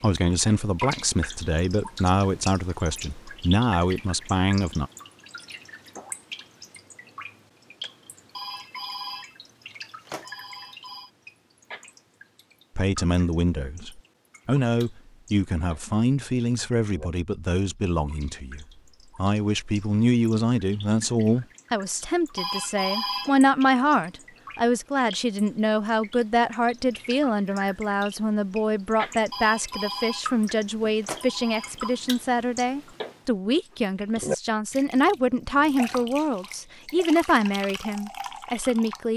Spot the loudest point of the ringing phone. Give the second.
23 s.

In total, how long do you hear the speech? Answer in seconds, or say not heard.
31 s.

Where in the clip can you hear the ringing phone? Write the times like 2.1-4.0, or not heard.
8.3-9.3, 10.1-11.1, 22.4-23.4, 29.3-32.0.